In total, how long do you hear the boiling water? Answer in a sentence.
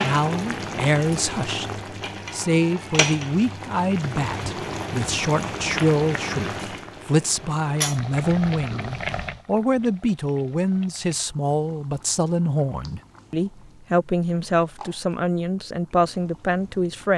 The boiling water can be heard for 17 seconds in total.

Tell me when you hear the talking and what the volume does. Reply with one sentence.
The talking can be heard from 0.0 to 17.1 s, at a steady volume.